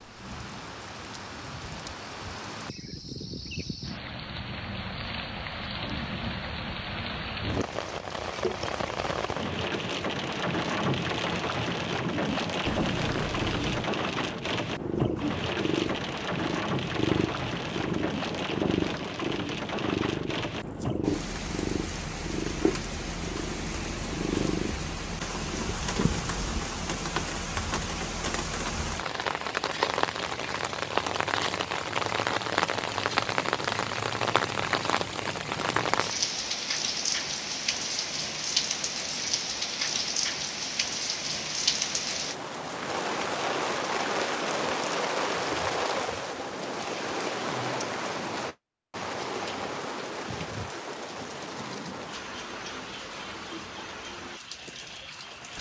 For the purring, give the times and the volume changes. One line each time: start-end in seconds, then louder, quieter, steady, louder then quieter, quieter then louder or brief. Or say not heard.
12.6-26.6 steady.